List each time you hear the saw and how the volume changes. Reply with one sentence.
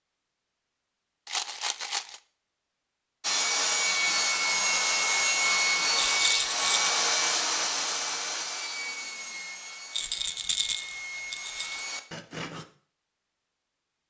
You can hear the saw from 3.2 to 12.7 s, getting quieter.